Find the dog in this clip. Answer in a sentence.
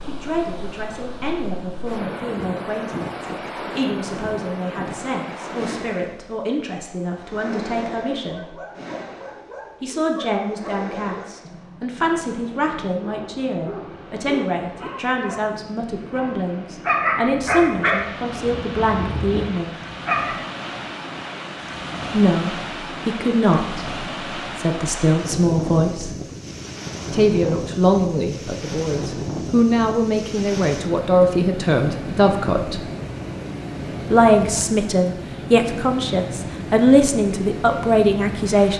The dog can be heard from 8.3 to 20.4 s.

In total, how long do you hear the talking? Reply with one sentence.
The talking can be heard for 33 seconds in total.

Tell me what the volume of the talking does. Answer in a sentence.
The loudness of the talking goes up.